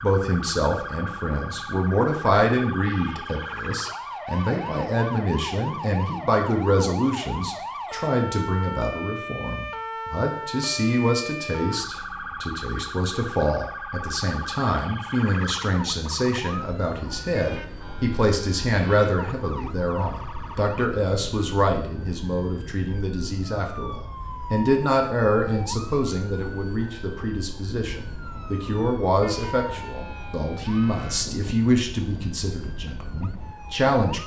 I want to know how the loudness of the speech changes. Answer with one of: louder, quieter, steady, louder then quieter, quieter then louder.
steady.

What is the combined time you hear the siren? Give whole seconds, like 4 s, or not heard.
34 s.